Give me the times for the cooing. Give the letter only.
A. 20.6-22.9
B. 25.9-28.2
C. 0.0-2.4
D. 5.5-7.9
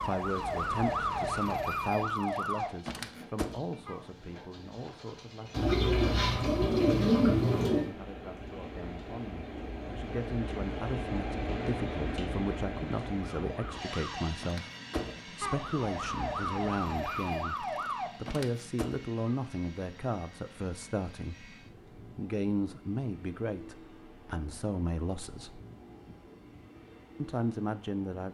D.